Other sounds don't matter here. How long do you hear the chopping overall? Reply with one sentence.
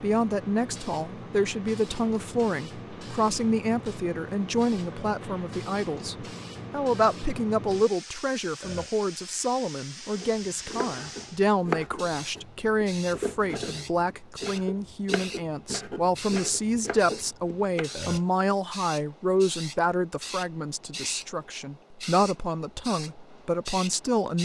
You can hear the chopping for 8 seconds altogether.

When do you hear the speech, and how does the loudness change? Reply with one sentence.
You can hear the speech from 0.0 to 24.4 s, at a steady volume.